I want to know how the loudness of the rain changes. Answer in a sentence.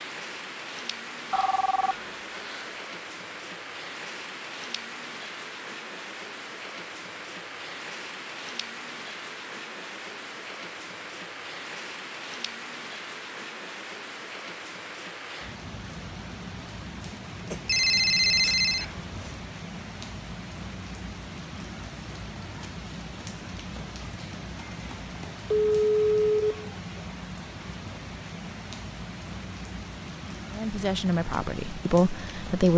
The volume of the rain stays about the same.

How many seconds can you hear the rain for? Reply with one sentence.
The rain can be heard for 33 seconds in total.